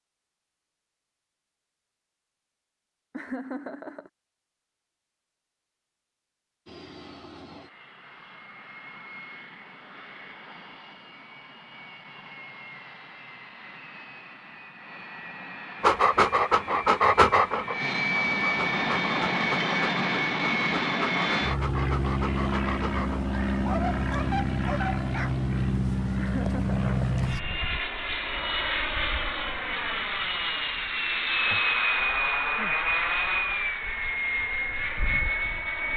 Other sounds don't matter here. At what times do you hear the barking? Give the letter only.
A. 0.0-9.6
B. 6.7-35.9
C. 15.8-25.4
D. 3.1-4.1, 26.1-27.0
C.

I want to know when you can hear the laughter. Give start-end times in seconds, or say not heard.
3.1-4.1, 26.1-27.0.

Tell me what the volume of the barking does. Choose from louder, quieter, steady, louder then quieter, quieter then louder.
quieter.